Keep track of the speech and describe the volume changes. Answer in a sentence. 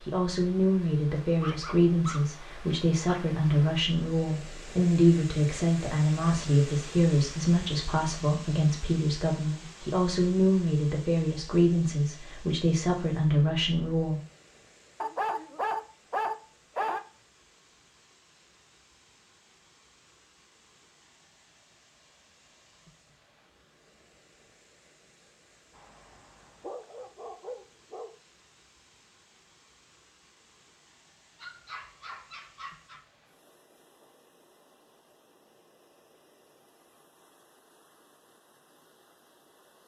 The loudness of the speech stays about the same.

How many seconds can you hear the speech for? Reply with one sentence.
You can hear the speech for 14 seconds altogether.